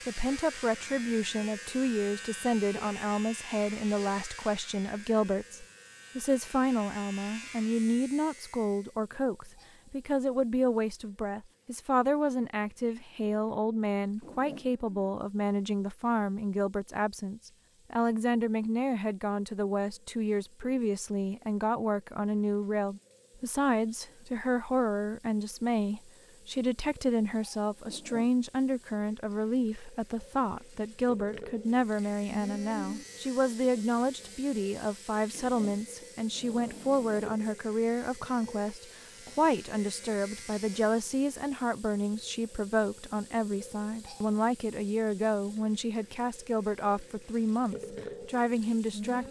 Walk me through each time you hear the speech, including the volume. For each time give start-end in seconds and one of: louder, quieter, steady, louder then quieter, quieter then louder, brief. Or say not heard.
0.1-49.2 steady.